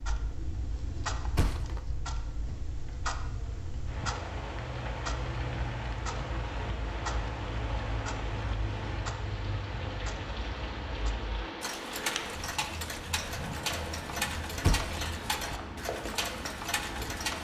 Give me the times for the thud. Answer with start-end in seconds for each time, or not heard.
1.4-1.8, 14.6-15.0.